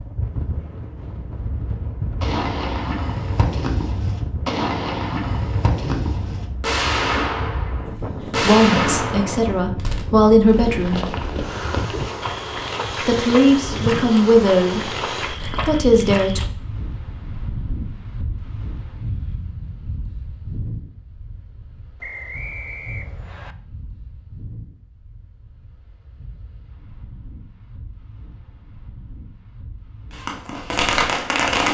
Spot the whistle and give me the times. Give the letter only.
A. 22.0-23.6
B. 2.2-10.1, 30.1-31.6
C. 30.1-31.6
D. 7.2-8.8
A.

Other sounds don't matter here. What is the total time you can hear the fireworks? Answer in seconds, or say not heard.
9 s.